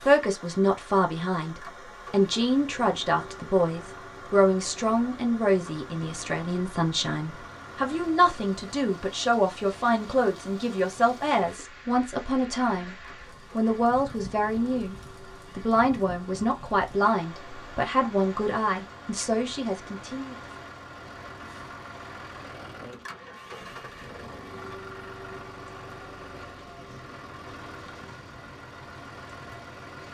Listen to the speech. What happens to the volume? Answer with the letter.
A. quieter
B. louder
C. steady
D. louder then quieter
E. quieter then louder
C.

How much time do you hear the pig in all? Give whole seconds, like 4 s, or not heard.
not heard.